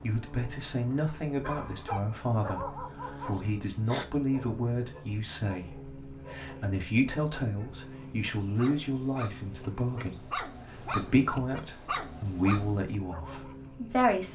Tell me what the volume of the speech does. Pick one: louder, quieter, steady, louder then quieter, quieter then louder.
steady.